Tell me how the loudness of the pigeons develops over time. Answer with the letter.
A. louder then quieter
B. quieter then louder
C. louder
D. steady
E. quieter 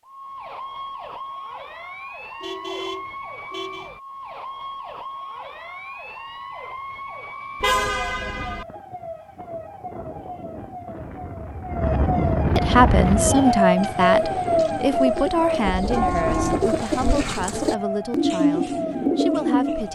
C.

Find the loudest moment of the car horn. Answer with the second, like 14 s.
8 s.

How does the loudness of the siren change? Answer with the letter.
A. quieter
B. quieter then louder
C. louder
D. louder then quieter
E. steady
D.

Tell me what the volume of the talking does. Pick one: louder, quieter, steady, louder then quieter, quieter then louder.
quieter.